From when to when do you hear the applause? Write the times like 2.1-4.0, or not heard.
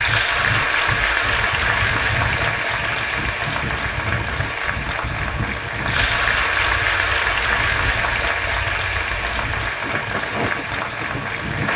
0.0-11.7.